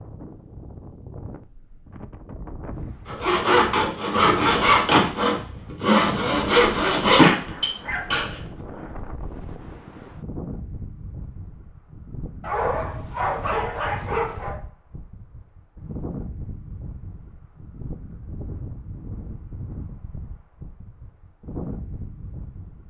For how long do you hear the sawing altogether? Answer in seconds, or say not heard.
5 s.